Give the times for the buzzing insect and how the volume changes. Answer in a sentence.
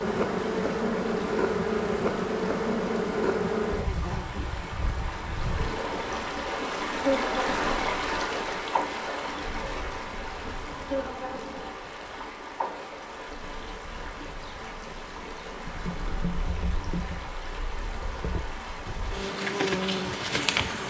You can hear the buzzing insect from 0.0 to 20.8 s, getting quieter then louder.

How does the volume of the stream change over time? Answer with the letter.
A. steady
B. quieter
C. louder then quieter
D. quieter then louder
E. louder
C.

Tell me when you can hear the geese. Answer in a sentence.
The geese can't be heard in this clip.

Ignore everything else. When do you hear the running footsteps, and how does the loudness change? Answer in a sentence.
You can't hear the running footsteps here.